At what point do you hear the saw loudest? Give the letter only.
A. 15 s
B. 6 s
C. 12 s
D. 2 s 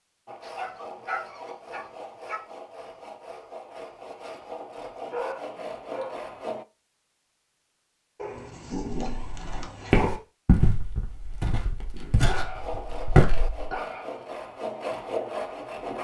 A.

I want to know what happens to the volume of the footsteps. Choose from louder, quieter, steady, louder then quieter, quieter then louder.
quieter then louder.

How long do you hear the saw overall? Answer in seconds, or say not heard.
10 s.